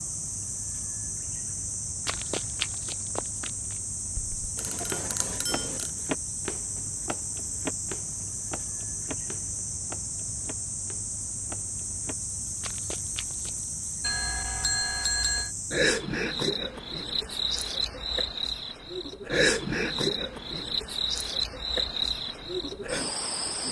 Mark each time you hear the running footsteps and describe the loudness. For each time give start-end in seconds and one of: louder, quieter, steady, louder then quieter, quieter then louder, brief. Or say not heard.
2.0-13.7 quieter.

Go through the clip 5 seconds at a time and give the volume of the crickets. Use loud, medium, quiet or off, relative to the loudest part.
medium, medium, medium, loud, loud.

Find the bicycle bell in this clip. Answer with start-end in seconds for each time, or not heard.
4.5-5.9, 14.0-15.5.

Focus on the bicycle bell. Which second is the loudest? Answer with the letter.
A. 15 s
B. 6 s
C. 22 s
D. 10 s
A.